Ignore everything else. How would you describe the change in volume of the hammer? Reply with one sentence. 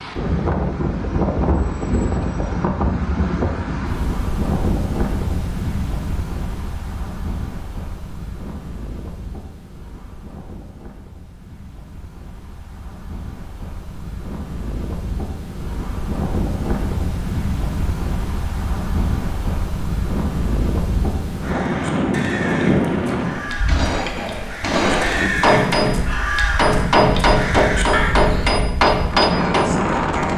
The volume of the hammer goes up.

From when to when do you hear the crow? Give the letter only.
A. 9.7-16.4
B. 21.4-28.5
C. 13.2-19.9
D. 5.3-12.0
B.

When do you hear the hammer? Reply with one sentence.
You can hear the hammer from 23.1 to 29.8 s.